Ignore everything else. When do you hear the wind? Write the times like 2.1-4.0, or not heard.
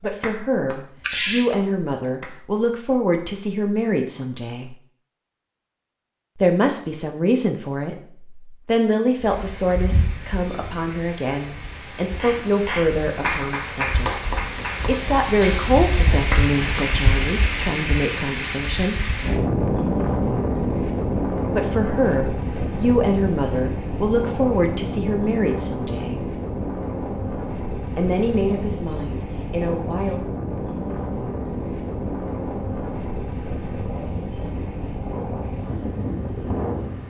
9.2-37.0.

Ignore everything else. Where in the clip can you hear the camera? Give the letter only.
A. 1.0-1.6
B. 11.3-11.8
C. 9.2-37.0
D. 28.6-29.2
A.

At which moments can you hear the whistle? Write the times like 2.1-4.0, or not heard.
not heard.